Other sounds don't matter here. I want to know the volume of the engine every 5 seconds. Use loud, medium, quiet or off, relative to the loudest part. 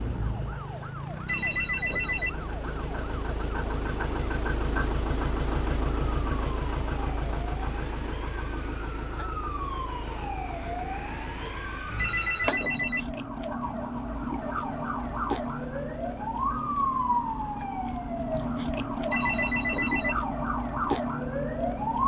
loud, loud, medium, quiet, quiet.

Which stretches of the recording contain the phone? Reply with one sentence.
The phone can be heard from 1.2 to 2.4 s, from 11.9 to 13.1 s and from 19.1 to 20.2 s.